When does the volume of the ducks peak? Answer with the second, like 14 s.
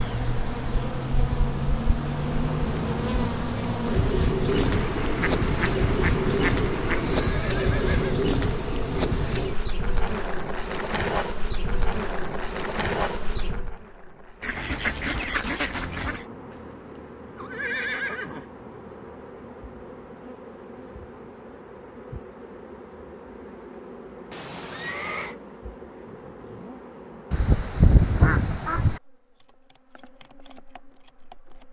28 s.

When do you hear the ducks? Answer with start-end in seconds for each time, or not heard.
4.5-7.3, 14.4-16.2, 27.3-29.0.